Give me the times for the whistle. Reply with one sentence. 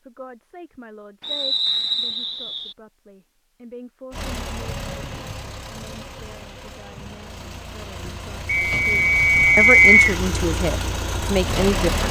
The whistle can be heard from 1.2 to 2.8 s and from 8.4 to 10.2 s.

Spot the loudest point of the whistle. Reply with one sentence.
The loudest moment of the whistle is at 10 seconds.